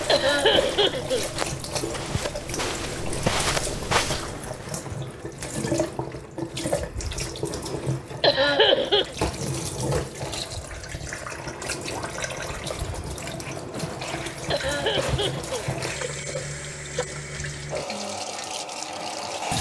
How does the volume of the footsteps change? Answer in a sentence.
The volume of the footsteps goes up.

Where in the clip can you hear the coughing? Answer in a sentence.
You can hear the coughing from 0.1 to 1.3 s, from 8.2 to 9.2 s and from 14.5 to 15.7 s.